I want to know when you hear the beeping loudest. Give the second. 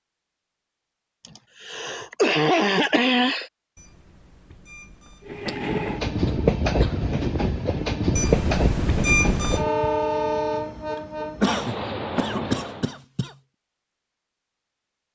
9 s.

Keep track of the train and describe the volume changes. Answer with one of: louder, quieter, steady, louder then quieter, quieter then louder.
quieter.